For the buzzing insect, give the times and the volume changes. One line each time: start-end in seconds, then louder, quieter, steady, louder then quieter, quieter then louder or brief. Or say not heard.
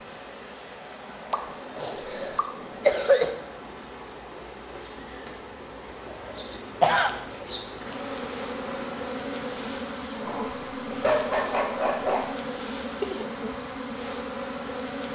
0.0-15.1 louder.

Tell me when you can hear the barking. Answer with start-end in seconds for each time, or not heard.
10.2-12.2.